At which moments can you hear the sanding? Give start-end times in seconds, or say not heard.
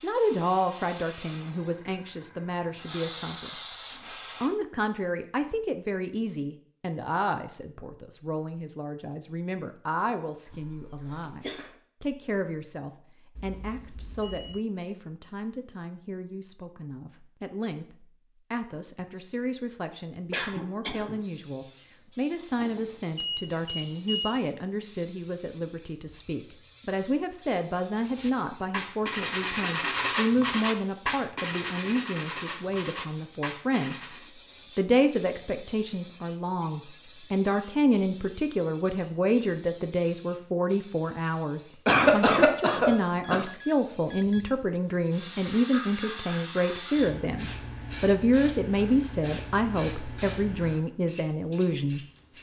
28.1-34.3.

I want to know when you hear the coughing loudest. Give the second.
42 s.